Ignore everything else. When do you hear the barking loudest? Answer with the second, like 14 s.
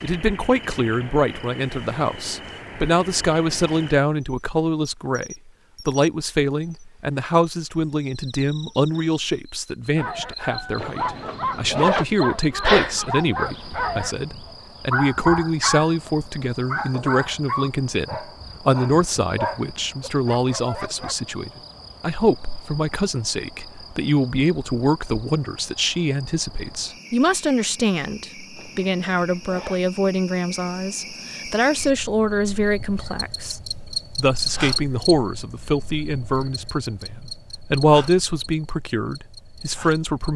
13 s.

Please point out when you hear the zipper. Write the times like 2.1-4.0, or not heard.
10.8-12.1, 28.6-29.8.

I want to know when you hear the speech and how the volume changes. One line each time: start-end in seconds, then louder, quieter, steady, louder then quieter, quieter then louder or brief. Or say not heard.
0.0-40.3 steady.